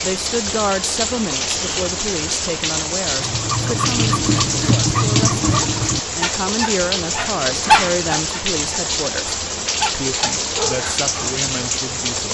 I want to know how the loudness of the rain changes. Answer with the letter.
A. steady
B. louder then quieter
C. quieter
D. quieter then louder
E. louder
A.